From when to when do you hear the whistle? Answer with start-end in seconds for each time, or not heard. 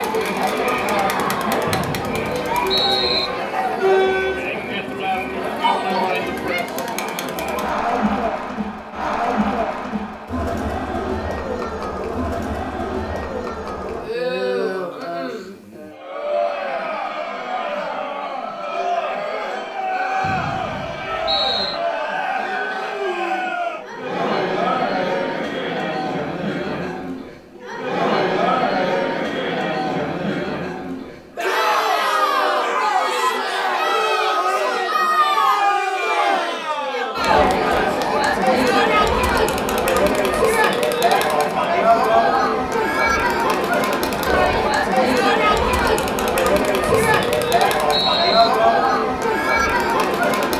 1.6-3.3, 20.2-21.8, 46.9-48.5.